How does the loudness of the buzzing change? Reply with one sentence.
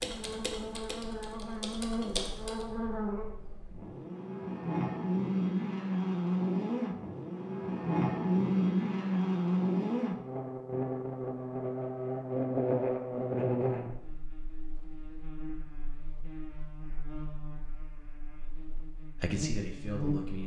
The loudness of the buzzing goes up, then down.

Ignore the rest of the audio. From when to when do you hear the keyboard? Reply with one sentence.
You can hear the keyboard from 0.0 to 2.6 s.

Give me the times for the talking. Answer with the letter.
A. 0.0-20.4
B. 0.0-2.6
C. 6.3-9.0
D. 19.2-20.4
D.